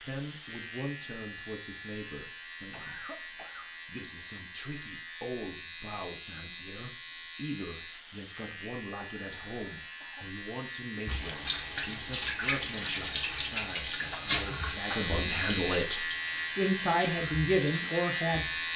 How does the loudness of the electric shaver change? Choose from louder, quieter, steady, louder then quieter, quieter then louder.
louder.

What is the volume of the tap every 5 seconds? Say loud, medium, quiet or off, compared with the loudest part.
off, off, loud, medium.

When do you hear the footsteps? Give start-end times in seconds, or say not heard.
not heard.